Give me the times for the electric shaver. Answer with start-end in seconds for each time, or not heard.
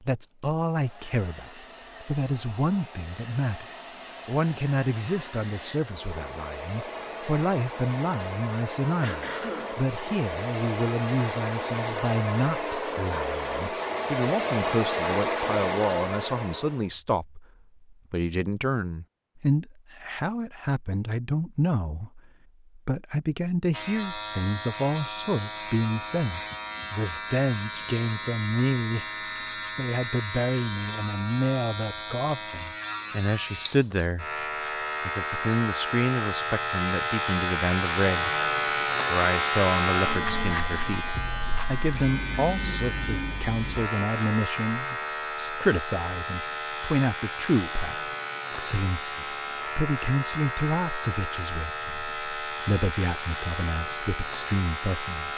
23.7-55.3.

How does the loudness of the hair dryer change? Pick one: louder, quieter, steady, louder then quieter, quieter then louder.
louder.